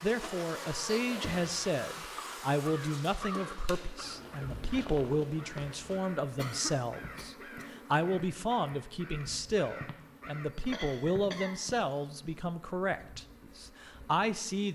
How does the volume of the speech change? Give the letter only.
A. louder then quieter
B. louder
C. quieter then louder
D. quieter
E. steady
E.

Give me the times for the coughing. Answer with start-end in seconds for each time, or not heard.
0.8-1.6, 6.3-7.8, 10.7-11.6.